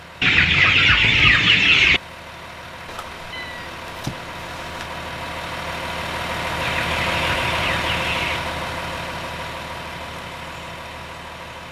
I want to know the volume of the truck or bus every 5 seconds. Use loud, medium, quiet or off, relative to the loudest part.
medium, loud, medium.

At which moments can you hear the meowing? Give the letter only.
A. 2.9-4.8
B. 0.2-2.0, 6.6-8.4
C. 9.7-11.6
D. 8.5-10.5
A.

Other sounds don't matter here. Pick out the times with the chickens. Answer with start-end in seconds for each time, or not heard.
0.2-2.0, 6.6-8.4.